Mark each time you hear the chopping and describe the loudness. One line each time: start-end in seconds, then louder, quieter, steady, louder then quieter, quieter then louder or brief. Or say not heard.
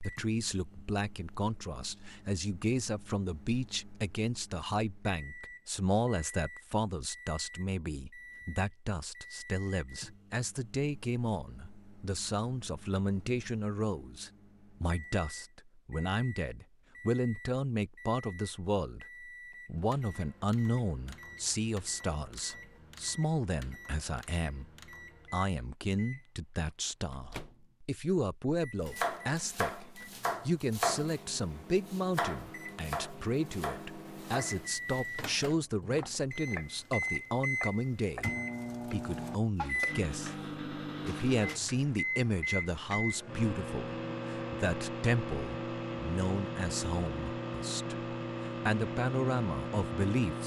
28.9-40.5 quieter.